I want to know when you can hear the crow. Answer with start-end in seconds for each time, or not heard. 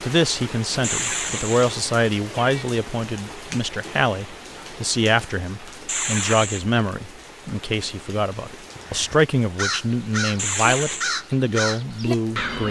8.8-12.6.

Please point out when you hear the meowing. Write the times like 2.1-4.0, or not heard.
0.8-2.6, 5.8-6.7, 10.3-11.2.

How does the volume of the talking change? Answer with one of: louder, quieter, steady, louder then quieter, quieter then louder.
steady.